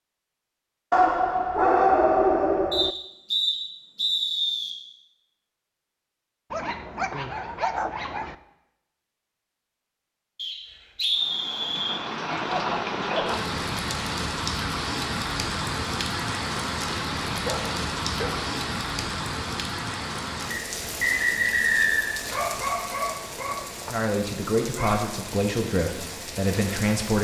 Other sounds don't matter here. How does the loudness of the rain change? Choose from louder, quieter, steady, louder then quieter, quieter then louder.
quieter.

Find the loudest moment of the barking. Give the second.
2 s.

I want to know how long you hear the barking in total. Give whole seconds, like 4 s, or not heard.
9 s.